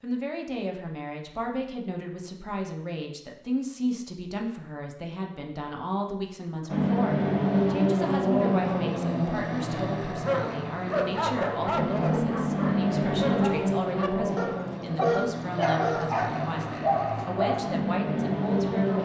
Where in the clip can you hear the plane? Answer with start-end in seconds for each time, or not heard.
6.7-18.9.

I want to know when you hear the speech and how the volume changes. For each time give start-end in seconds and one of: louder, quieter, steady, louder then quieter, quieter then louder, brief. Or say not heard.
0.0-18.9 steady.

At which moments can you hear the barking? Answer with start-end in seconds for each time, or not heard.
10.1-17.8.